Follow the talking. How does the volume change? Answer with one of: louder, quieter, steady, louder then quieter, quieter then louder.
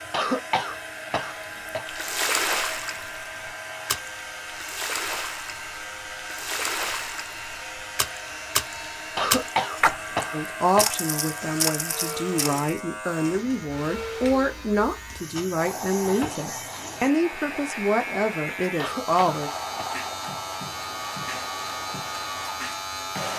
steady.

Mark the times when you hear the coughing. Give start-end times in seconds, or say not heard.
0.1-1.9, 9.2-10.9, 18.8-19.9.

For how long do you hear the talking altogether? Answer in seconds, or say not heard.
9 s.